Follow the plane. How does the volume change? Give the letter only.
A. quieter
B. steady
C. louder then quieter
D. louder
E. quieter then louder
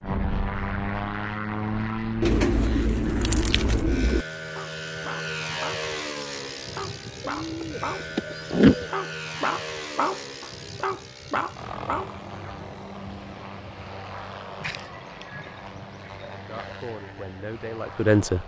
A.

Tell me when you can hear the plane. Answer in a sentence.
You can hear the plane from 0.0 to 18.4 s.